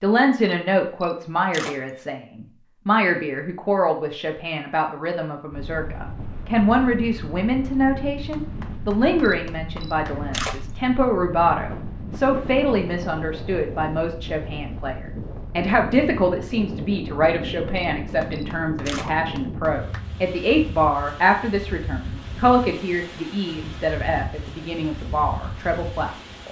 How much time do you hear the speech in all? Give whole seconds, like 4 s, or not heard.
26 s.